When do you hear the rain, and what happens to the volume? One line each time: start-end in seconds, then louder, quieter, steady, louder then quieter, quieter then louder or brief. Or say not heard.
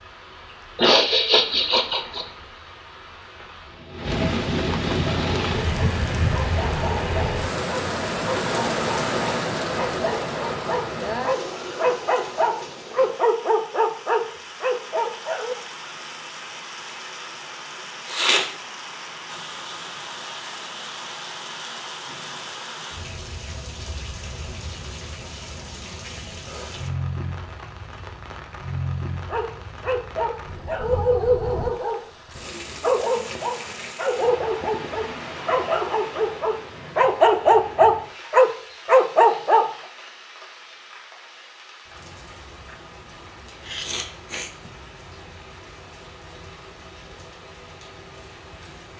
0.0-48.9 quieter.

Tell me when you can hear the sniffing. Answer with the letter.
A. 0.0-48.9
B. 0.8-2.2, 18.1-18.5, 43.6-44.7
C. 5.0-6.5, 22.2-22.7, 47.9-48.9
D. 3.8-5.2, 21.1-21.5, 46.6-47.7
B.